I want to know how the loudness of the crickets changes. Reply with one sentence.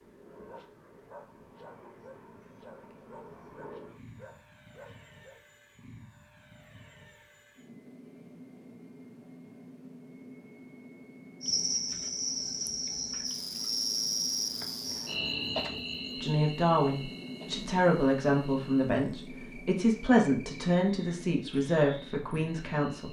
The volume of the crickets goes down.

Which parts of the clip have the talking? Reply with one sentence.
You can hear the talking from 16.2 to 23.0 s.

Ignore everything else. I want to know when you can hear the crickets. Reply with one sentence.
The crickets can be heard from 11.4 to 23.0 s.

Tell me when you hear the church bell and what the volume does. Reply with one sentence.
You can't hear the church bell here.